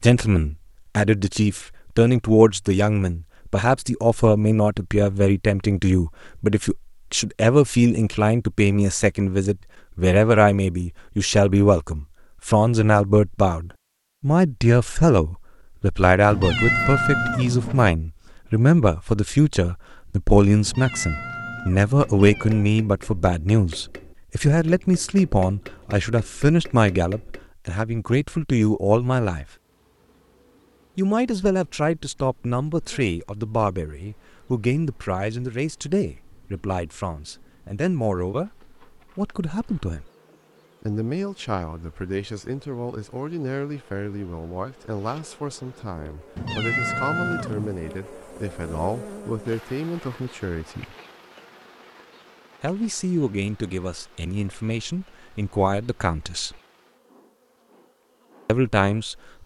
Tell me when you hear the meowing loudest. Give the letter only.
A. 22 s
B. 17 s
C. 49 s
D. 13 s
B.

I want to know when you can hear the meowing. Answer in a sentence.
You can hear the meowing from 16.3 to 17.9 s, from 20.6 to 22.6 s and from 46.4 to 47.8 s.